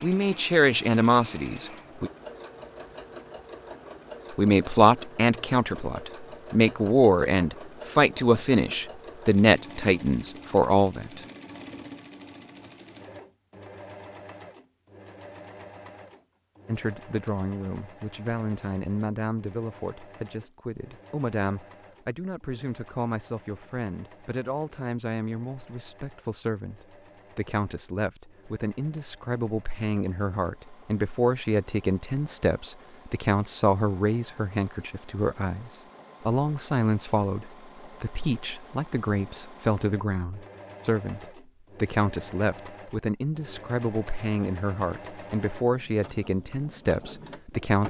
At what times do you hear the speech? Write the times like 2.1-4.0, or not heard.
0.0-2.1, 4.3-11.2, 16.6-47.8.